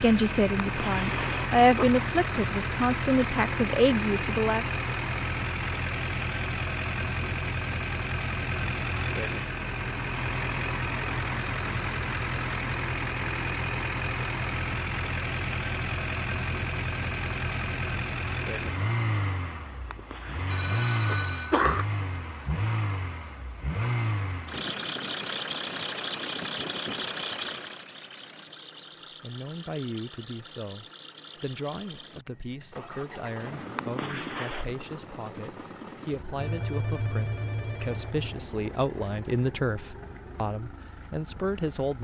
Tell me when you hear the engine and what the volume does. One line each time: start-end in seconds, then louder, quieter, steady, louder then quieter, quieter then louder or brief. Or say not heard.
0.0-41.9 quieter.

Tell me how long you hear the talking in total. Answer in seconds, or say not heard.
17 s.